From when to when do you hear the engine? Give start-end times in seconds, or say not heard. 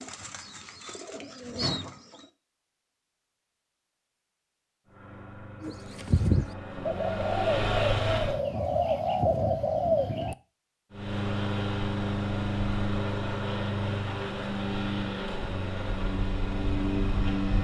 4.8-8.4, 10.9-17.5.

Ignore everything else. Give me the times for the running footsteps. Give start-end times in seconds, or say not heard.
not heard.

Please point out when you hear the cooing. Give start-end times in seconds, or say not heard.
0.0-2.3, 5.6-10.3.